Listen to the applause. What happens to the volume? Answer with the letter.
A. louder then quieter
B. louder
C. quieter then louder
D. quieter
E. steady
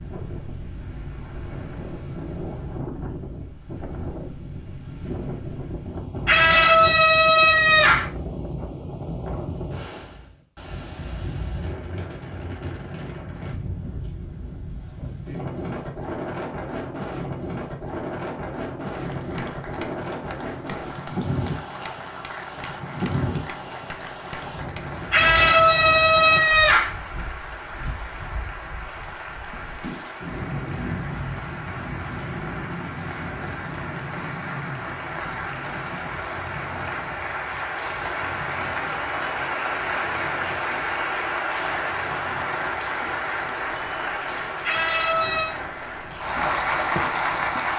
B.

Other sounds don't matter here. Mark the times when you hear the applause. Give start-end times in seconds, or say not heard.
18.9-47.7.